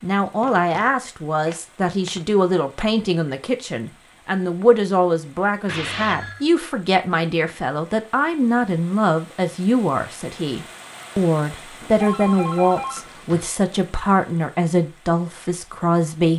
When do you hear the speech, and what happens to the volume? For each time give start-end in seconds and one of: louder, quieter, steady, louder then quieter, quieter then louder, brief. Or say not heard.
0.0-16.3 steady.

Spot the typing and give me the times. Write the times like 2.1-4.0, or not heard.
not heard.